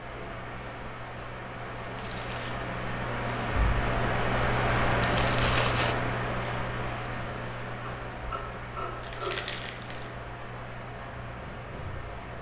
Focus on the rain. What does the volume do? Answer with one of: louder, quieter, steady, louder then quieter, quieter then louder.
louder then quieter.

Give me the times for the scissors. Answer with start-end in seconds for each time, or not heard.
7.8-9.4.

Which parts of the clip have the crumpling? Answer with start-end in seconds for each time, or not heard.
1.9-2.6, 5.0-6.0, 9.0-10.1.